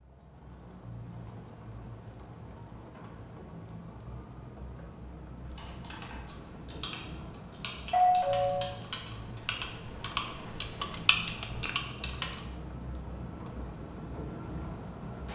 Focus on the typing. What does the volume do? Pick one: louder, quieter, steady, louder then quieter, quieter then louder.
louder.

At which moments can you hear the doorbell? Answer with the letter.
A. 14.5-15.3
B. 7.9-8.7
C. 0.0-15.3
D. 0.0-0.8
B.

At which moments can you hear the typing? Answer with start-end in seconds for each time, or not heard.
5.5-12.4.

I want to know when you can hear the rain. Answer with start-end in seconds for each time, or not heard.
0.0-15.3.